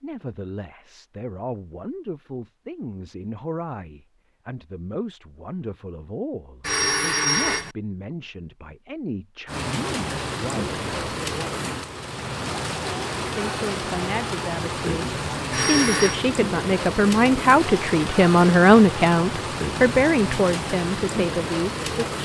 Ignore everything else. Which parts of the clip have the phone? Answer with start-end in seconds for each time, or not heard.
6.6-7.8, 15.5-16.1.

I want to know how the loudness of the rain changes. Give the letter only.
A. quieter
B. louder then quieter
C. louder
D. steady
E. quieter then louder
D.